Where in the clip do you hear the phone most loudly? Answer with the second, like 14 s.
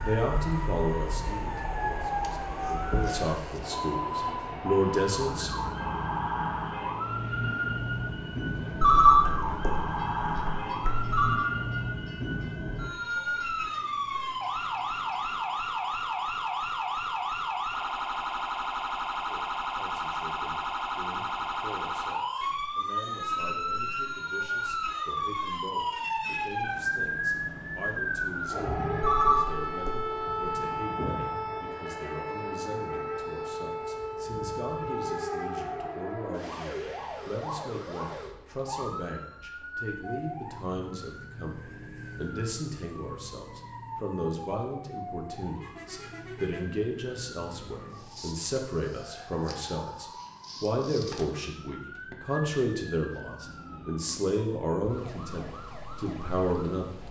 9 s.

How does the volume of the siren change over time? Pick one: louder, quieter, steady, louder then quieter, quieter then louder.
quieter.